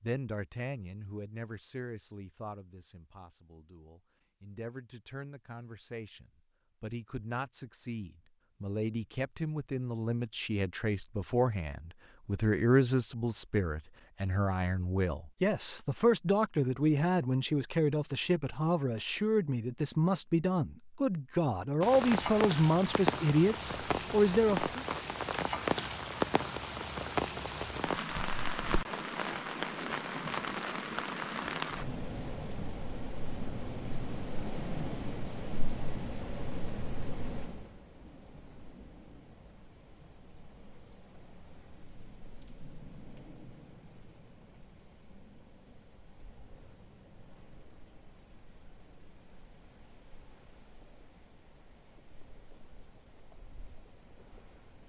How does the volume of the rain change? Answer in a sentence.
The loudness of the rain goes down.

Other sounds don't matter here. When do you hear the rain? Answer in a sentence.
You can hear the rain from 21.8 to 54.8 s.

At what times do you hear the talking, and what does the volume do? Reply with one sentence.
The talking can be heard from 0.0 to 24.9 s, getting louder.